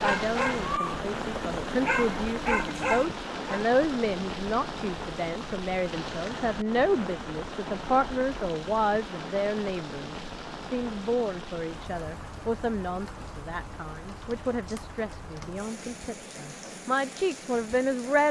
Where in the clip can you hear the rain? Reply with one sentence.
The rain can be heard from 0.0 to 18.2 s.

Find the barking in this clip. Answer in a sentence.
The barking can be heard from 0.0 to 3.6 s.